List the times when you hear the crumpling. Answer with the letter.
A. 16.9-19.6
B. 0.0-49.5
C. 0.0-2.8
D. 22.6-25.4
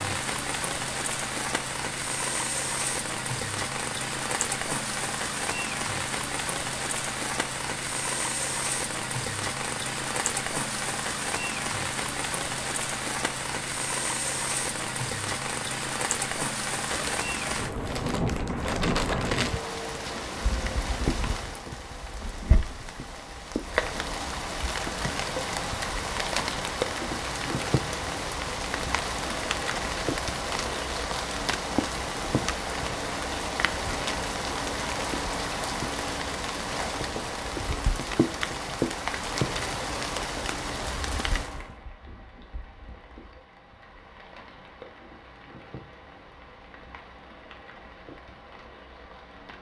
A.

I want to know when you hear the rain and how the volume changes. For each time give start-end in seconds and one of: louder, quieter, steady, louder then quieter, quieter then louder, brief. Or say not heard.
0.0-49.5 quieter.